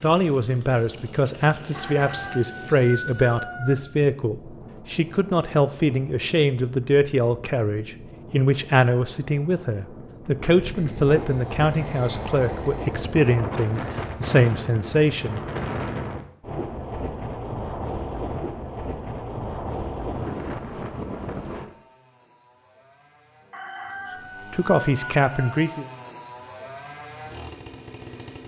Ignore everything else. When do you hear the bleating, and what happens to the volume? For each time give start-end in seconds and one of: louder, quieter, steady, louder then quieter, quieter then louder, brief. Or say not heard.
not heard.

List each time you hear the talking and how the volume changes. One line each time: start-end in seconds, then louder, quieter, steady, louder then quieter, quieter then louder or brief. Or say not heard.
0.0-15.4 steady
24.5-25.9 brief.